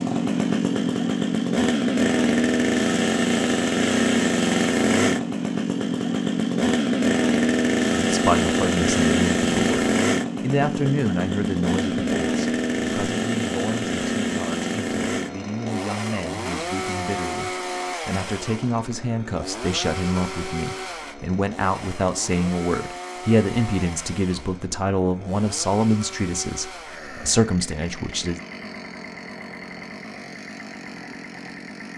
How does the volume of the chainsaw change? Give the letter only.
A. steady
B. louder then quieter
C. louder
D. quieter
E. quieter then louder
D.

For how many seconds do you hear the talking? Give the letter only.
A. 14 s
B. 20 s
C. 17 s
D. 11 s
B.